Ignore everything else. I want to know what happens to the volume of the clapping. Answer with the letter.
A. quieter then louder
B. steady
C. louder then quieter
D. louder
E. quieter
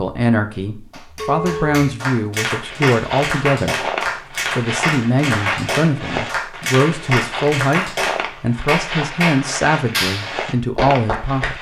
B.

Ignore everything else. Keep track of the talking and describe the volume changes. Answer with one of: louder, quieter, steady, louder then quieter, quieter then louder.
steady.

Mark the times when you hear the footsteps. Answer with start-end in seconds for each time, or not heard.
2.6-11.5.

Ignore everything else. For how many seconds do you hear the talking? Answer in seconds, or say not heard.
11 s.